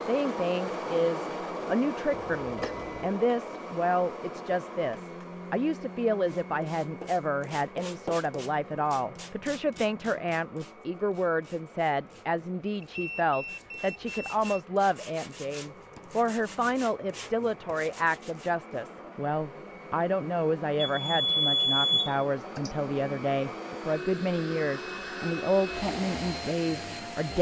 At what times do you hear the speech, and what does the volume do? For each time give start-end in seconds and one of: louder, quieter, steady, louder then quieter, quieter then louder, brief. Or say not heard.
0.0-27.3 steady.